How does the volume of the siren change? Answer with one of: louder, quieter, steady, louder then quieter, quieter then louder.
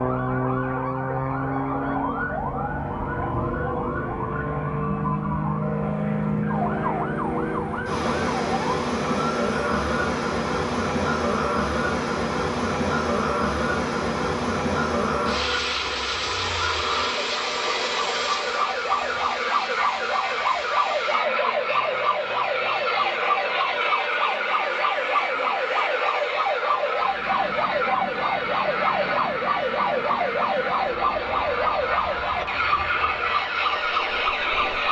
louder.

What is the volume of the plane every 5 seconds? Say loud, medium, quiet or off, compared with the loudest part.
loud, loud, loud, loud, medium, medium, medium.